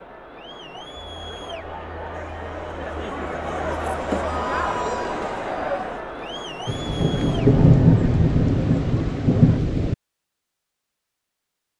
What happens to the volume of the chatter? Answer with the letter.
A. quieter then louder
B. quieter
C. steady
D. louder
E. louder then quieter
E.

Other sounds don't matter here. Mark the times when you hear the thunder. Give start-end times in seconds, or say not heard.
6.7-9.9.